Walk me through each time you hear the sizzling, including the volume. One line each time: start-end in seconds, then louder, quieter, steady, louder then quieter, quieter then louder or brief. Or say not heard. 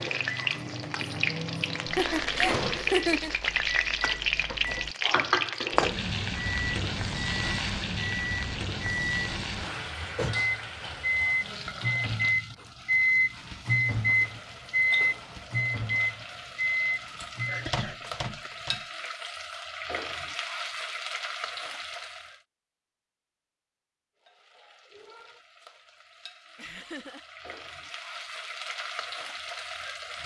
0.0-22.4 quieter then louder
24.1-30.2 louder.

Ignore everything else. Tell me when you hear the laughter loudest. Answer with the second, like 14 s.
3 s.